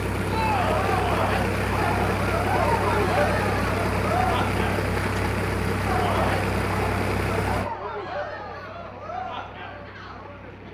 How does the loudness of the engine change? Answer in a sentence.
The loudness of the engine goes down.